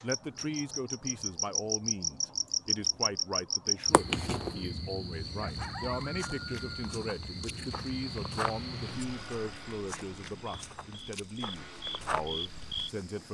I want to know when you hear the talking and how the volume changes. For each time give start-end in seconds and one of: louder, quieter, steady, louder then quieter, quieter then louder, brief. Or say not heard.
0.0-13.2 steady.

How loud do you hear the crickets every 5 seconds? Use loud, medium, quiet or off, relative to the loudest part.
loud, medium, medium.